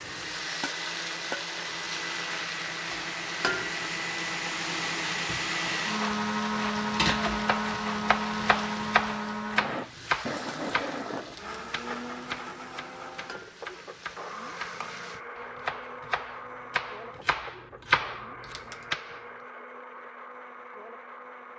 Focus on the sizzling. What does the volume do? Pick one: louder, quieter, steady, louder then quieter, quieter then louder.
quieter.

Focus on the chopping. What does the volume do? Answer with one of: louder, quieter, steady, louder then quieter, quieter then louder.
quieter then louder.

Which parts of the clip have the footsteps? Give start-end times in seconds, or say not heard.
not heard.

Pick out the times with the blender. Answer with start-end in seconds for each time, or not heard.
0.0-21.5.